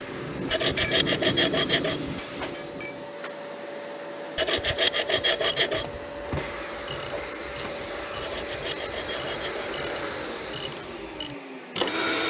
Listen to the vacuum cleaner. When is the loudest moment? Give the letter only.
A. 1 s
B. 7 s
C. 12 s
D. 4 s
C.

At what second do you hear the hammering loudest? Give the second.
1 s.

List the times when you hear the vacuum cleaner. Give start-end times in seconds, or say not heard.
0.0-12.2.